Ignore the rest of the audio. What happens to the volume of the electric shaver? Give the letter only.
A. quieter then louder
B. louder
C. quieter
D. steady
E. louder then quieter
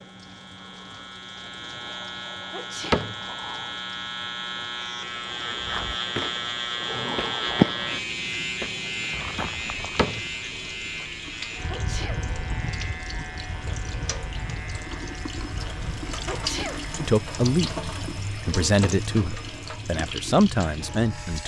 E.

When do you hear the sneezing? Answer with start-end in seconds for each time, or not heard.
2.5-3.1, 11.7-12.2, 16.2-16.9.